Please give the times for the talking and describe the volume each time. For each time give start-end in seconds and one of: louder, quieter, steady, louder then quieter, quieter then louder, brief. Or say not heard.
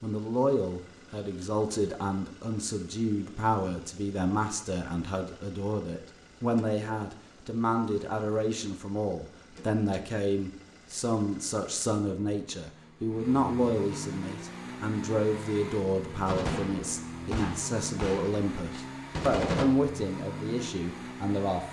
0.0-21.6 steady.